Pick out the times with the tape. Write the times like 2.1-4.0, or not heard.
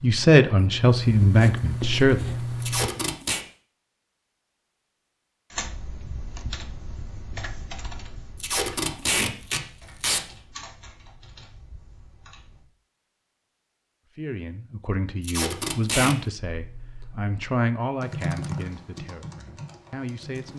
2.6-3.5, 8.4-10.2, 15.2-16.1.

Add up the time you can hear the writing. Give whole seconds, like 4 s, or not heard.
3 s.